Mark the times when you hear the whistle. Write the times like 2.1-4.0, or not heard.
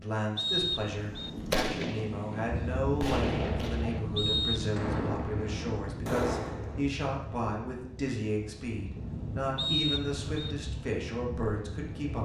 0.3-1.3, 4.2-4.7, 9.6-10.6.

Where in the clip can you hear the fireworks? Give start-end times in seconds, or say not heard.
1.1-6.8.